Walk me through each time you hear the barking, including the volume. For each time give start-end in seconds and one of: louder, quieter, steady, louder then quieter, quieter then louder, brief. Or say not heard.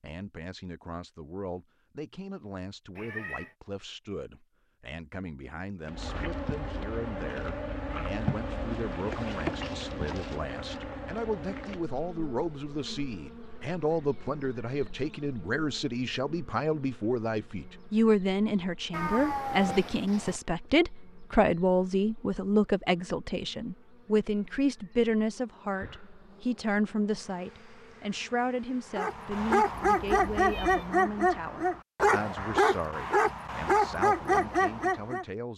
28.9-35.2 steady.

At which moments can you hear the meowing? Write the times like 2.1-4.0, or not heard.
3.0-3.5, 18.9-20.4, 29.7-30.9.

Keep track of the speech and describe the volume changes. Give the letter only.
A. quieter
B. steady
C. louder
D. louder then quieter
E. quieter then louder
D.